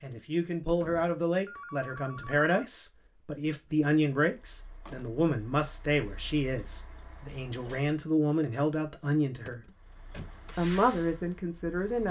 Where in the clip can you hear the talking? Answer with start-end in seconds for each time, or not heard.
0.0-9.7, 10.4-12.0.